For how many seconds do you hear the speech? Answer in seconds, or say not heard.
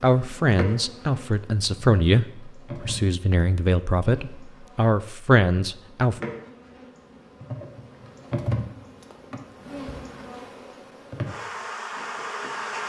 6 s.